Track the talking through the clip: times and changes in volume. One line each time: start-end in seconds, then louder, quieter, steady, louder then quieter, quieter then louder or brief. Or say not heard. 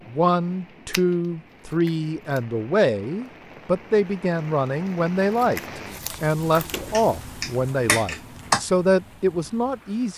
0.1-10.1 steady.